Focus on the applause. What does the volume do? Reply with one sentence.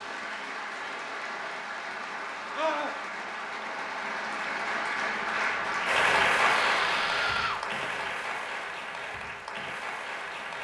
The loudness of the applause goes up, then down.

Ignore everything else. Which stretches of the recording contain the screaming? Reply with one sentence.
The screaming can be heard from 2.5 to 3.0 s and from 6.3 to 7.6 s.